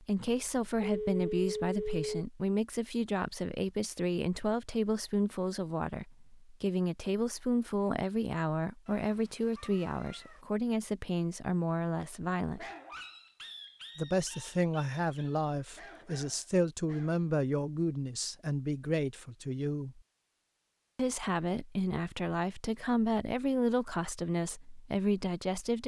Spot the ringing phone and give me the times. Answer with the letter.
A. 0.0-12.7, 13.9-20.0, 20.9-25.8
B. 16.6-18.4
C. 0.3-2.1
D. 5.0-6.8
C.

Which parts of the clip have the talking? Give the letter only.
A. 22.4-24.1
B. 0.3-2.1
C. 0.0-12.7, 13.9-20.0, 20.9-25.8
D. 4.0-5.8
C.